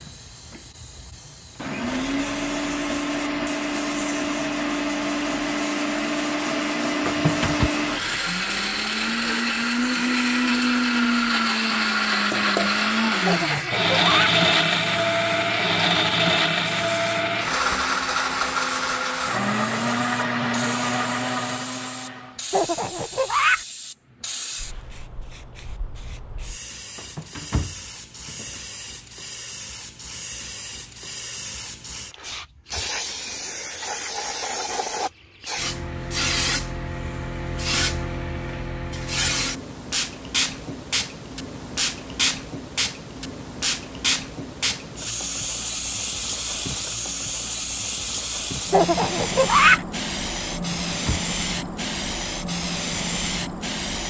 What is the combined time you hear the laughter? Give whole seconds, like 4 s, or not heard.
3 s.